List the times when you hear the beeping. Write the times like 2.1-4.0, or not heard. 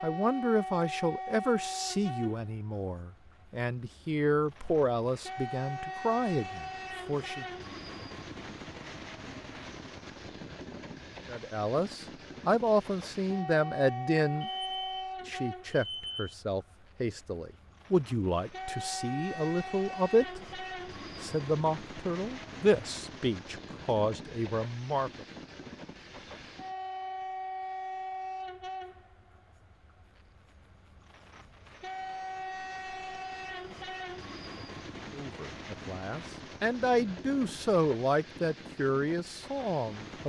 14.3-16.4.